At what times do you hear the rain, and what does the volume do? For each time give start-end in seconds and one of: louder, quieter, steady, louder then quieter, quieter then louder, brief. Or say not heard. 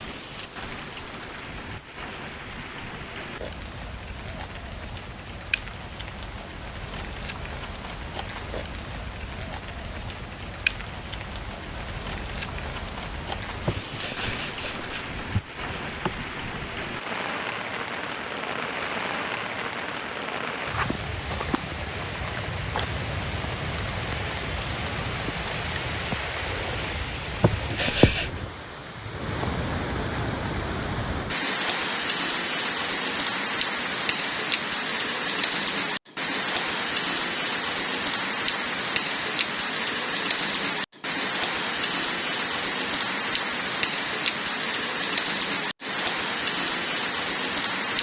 0.0-47.9 louder.